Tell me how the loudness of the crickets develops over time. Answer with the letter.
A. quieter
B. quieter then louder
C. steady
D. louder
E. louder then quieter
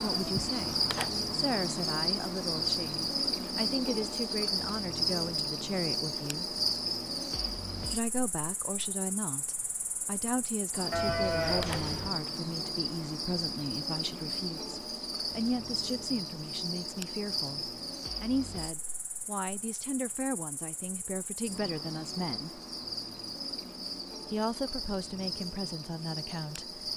A.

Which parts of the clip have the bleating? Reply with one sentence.
The bleating can be heard from 10.9 to 12.1 s.